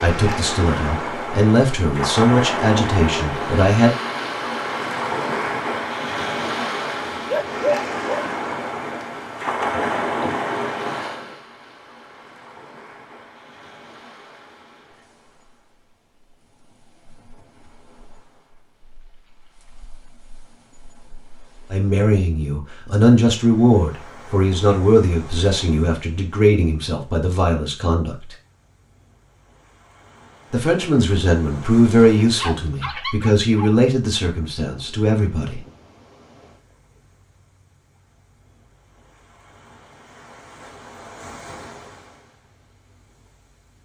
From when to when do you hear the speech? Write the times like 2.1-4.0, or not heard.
0.0-4.0, 21.7-28.1, 30.5-35.6.